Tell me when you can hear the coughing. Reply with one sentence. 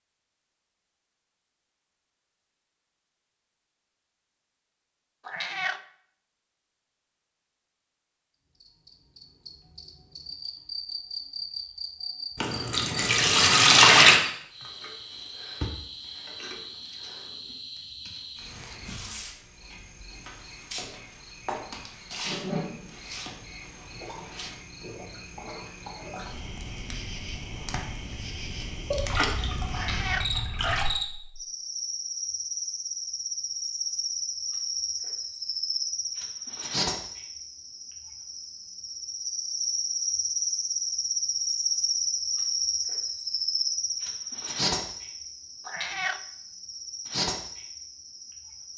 The coughing can't be heard in this clip.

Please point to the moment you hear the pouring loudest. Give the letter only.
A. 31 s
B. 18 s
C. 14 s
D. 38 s
C.